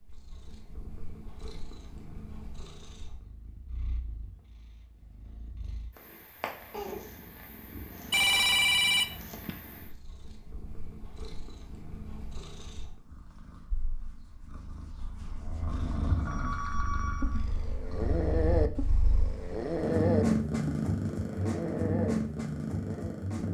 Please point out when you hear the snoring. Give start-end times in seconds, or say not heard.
15.3-23.3.